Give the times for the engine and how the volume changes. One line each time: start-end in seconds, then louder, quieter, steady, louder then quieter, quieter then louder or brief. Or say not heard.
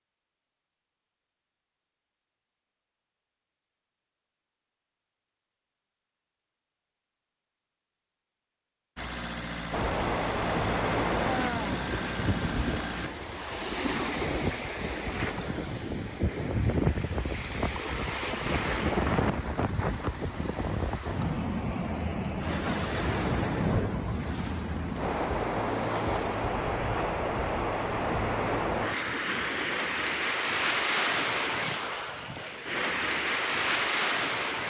8.9-13.1 steady.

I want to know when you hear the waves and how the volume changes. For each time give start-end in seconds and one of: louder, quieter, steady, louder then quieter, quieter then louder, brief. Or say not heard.
9.7-34.6 steady.